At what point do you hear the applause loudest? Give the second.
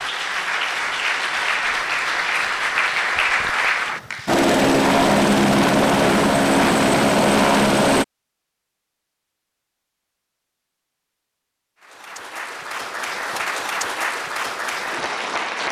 3 s.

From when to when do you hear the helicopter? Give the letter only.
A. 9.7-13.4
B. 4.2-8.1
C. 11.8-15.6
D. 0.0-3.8
B.